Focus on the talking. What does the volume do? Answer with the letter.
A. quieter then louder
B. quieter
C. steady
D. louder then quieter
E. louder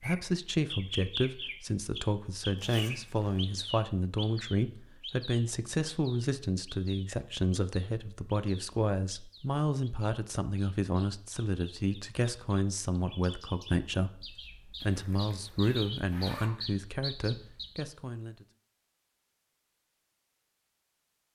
C.